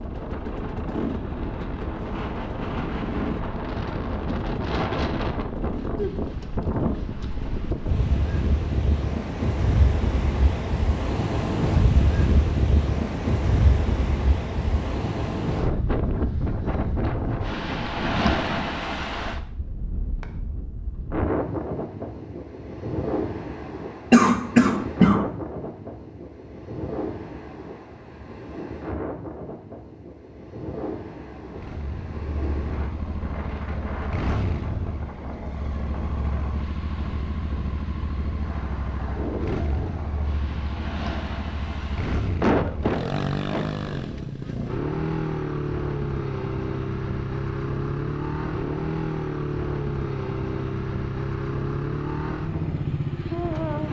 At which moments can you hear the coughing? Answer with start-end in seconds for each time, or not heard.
24.1-25.3, 42.4-43.6.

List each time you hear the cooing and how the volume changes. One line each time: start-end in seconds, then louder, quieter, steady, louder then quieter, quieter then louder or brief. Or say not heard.
not heard.